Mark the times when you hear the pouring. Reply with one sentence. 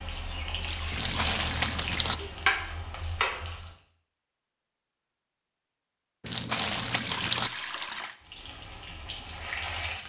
The pouring can be heard from 0.7 to 1.9 s and from 6.7 to 8.2 s.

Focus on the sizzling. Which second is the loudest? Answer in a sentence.
The loudest moment of the sizzling is at 3 seconds.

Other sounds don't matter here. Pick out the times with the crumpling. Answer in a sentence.
You can hear the crumpling from 0.9 to 2.1 s and from 6.2 to 7.5 s.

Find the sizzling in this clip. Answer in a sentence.
You can hear the sizzling from 0.0 to 3.8 s and from 8.2 to 10.0 s.